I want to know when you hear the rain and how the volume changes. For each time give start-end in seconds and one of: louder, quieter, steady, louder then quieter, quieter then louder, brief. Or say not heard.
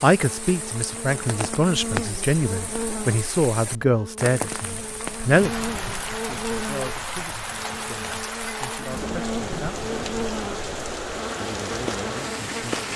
0.0-12.9 steady.